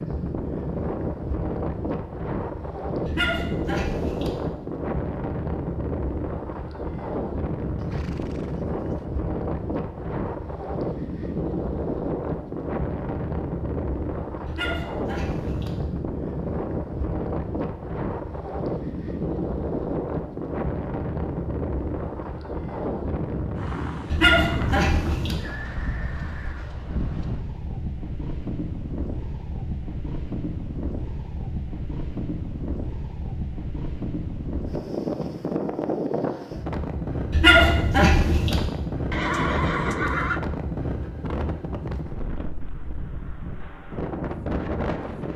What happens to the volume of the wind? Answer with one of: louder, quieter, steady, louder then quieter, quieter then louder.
steady.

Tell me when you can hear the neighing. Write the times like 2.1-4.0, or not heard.
7.8-9.1, 25.4-26.7, 39.1-40.4.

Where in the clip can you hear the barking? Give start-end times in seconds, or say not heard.
3.0-4.3, 14.4-15.8, 24.1-25.4, 37.3-38.6.